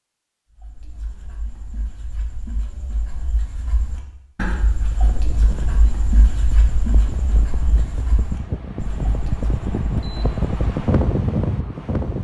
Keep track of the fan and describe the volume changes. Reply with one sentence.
The volume of the fan goes up.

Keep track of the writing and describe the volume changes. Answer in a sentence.
The loudness of the writing goes up, then down.